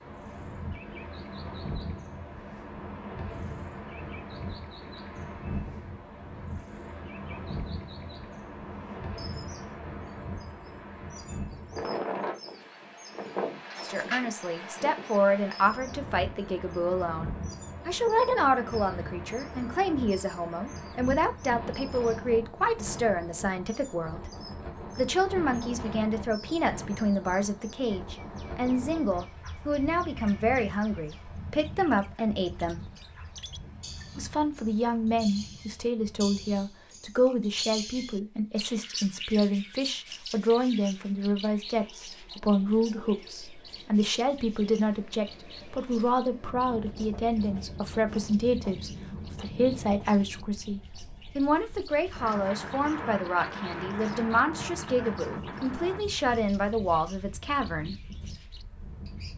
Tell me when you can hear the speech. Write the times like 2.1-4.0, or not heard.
13.8-24.2, 24.9-32.8, 34.1-58.0.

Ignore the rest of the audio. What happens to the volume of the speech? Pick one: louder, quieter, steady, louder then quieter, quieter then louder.
steady.